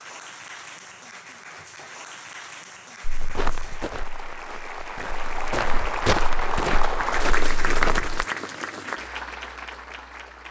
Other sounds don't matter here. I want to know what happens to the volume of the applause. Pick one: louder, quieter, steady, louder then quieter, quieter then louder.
louder then quieter.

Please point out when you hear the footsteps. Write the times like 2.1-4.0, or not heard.
3.0-8.2.